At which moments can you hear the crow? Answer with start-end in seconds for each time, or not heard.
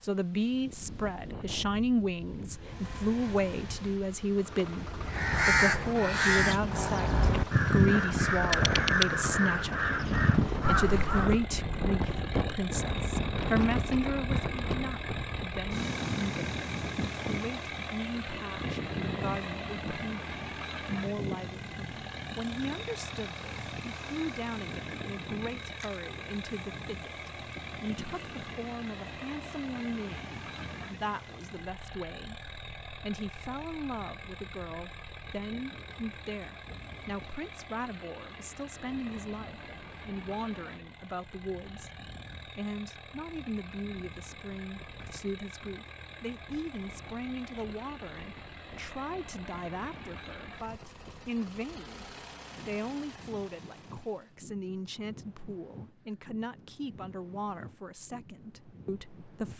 5.0-11.4.